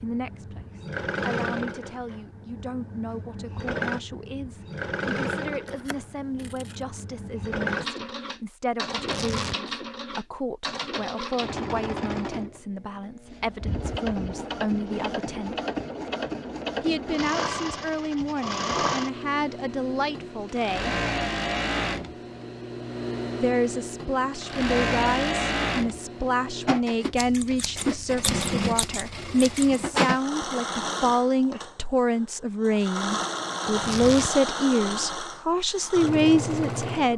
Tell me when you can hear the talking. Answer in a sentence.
The talking can be heard from 0.0 to 15.6 s, from 16.8 to 21.0 s and from 23.4 to 37.1 s.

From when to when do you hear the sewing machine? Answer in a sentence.
You can hear the sewing machine from 0.0 to 37.1 s.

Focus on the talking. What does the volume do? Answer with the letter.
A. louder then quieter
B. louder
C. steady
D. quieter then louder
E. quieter
B.